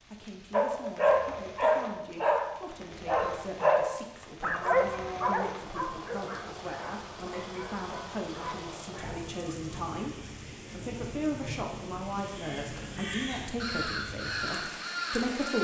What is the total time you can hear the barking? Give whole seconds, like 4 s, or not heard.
9 s.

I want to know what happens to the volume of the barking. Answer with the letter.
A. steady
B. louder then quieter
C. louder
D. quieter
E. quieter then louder
D.